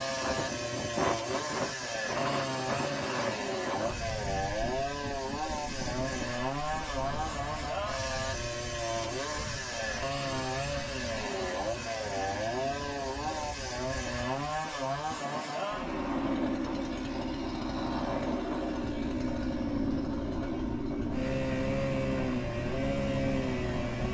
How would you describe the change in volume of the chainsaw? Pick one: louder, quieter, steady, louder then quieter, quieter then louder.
steady.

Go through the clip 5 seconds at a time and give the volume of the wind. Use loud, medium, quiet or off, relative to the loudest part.
loud, medium, medium, loud, loud.